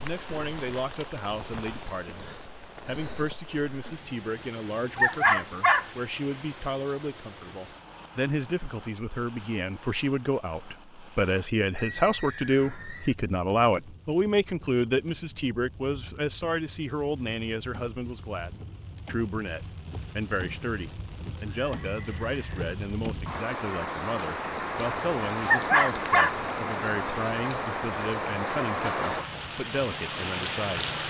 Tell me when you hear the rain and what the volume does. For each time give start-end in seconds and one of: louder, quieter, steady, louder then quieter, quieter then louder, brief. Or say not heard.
0.0-31.0 quieter then louder.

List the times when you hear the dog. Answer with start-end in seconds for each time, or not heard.
5.0-5.8, 25.4-26.4.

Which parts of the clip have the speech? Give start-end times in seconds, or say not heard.
0.0-31.0.